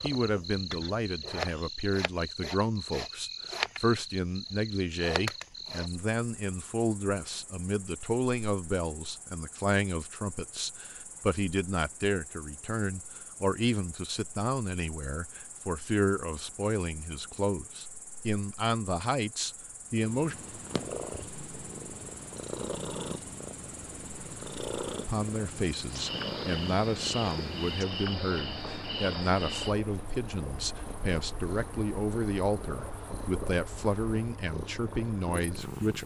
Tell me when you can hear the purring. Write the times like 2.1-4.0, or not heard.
19.9-36.0.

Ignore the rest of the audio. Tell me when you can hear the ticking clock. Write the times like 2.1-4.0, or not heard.
not heard.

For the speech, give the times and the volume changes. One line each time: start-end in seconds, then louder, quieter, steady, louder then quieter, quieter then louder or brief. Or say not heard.
0.0-20.4 steady
25.1-36.0 steady.